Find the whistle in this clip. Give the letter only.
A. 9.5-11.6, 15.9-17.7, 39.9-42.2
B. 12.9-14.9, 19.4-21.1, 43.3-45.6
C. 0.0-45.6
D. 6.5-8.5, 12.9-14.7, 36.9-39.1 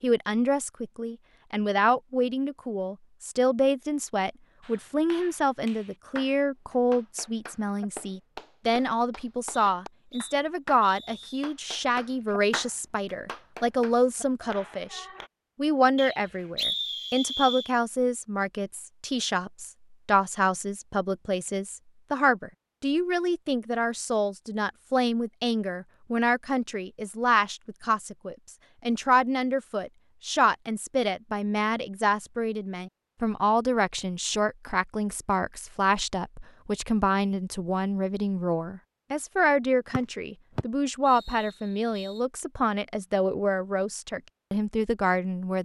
A.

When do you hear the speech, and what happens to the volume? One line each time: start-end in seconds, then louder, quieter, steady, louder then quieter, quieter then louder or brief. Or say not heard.
0.0-45.6 steady.